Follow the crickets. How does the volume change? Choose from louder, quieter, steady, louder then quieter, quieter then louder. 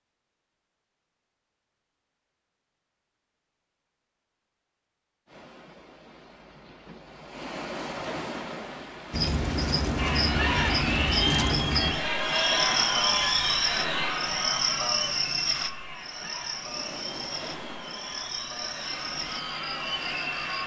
quieter.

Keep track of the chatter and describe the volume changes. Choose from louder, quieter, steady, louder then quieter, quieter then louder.
quieter then louder.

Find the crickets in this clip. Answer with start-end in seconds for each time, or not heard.
9.1-20.6.